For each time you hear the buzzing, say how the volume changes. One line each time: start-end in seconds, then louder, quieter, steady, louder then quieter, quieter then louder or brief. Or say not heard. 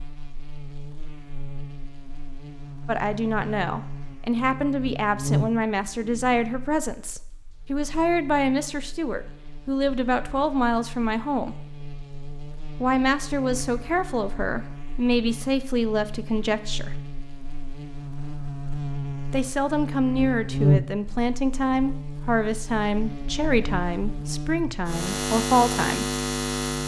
0.0-26.8 quieter then louder.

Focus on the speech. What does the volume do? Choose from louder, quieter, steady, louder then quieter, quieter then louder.
steady.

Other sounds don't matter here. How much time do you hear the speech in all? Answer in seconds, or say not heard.
20 s.